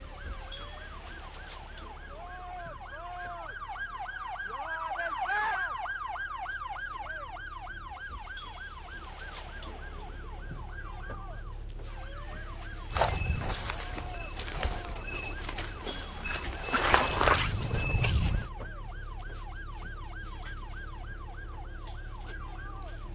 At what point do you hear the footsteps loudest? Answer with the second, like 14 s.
17 s.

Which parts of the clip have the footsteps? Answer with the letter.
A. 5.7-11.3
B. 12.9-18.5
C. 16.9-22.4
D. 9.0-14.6
B.